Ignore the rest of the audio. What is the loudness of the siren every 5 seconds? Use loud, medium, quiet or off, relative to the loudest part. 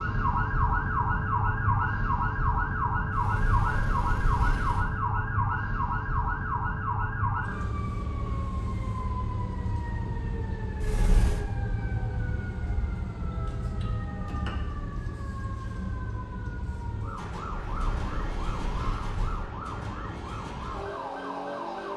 loud, loud, medium, medium, medium.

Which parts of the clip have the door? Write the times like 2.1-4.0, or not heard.
3.1-4.8, 10.8-11.4, 17.5-19.5.